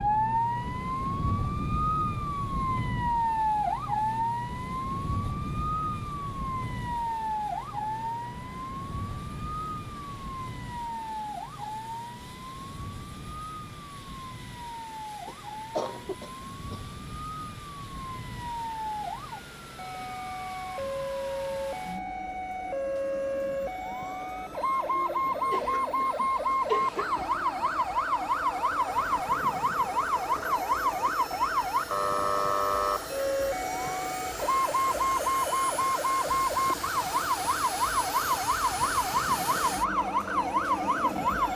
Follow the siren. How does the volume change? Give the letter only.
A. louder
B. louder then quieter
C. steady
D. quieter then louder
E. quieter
D.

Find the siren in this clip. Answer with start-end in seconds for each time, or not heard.
0.0-41.5.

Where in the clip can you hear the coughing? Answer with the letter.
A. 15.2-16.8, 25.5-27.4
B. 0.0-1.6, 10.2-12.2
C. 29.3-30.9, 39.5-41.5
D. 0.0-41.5
A.